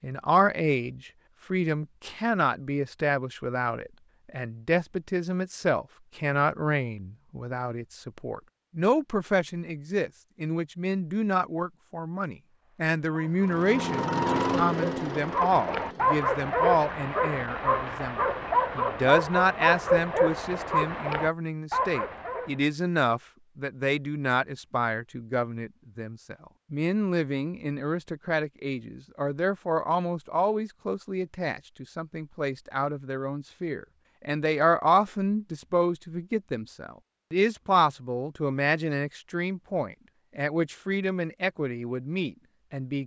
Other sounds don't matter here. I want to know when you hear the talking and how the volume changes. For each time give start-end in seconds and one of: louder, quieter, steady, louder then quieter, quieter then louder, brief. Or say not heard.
0.0-43.0 steady.